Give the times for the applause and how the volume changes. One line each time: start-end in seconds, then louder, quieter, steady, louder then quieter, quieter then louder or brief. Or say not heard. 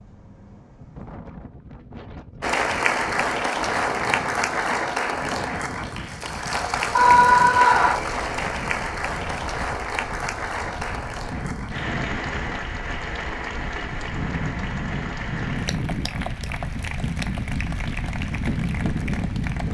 2.4-19.6 quieter.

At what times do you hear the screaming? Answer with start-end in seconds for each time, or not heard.
7.0-8.0.